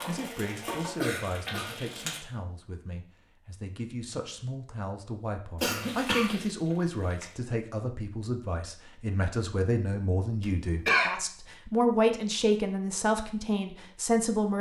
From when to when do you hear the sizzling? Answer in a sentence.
You can hear the sizzling from 0.0 to 2.2 s and from 5.8 to 7.3 s.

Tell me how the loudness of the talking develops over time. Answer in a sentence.
The volume of the talking goes up.